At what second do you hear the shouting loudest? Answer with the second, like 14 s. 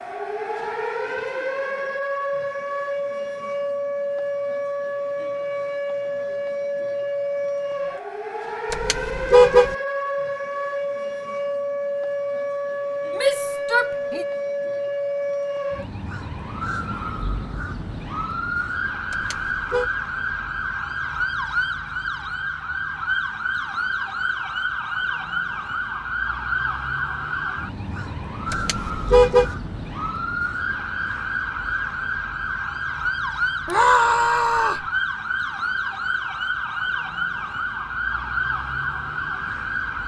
34 s.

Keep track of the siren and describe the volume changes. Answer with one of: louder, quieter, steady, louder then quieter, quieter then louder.
steady.